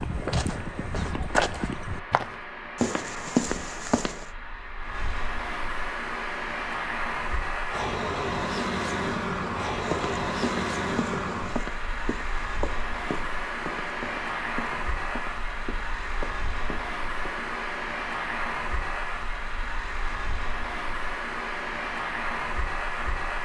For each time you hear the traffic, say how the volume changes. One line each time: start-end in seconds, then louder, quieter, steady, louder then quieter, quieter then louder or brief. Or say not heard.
0.0-23.3 louder.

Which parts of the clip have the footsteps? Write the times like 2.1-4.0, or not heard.
0.0-4.2, 9.8-17.5.